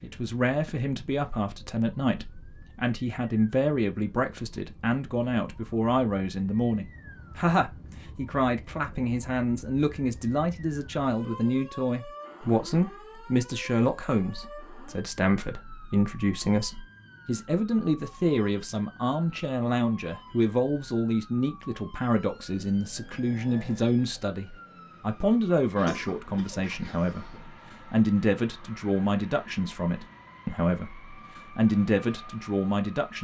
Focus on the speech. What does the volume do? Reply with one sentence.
The loudness of the speech stays about the same.